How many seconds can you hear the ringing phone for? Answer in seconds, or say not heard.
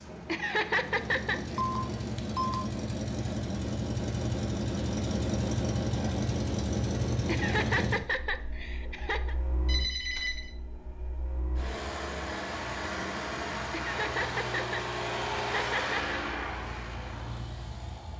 2 s.